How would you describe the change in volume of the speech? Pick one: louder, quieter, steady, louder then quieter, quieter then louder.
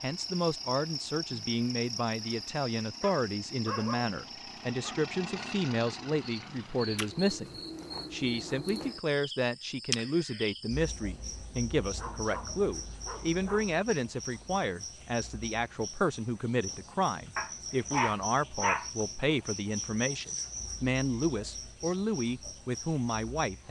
steady.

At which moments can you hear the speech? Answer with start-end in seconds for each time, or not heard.
0.0-23.6.